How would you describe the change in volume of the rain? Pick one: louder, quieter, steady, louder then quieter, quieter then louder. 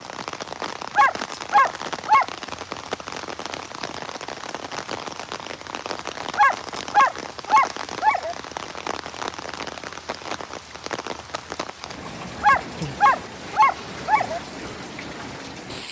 steady.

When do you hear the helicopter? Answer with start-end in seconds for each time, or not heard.
not heard.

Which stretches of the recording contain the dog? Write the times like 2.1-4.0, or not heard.
0.9-2.2, 6.3-8.3, 12.4-14.4.